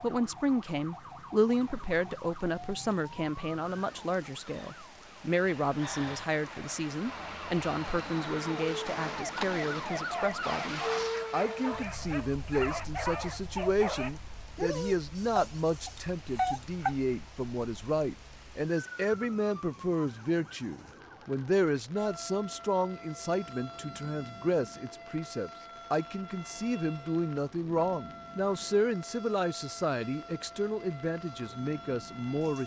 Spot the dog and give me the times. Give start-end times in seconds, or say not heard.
9.3-16.9.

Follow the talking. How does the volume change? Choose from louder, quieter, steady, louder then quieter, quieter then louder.
steady.